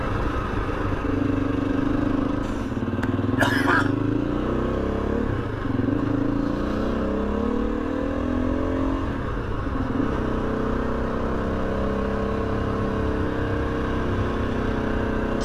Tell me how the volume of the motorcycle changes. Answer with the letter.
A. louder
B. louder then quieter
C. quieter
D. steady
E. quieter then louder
D.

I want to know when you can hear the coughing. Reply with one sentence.
You can hear the coughing from 2.4 to 4.0 s.